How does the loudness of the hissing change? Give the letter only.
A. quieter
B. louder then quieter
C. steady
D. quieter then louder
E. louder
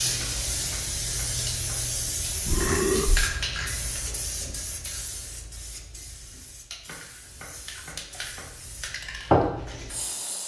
D.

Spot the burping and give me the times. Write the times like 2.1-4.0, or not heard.
2.5-3.3.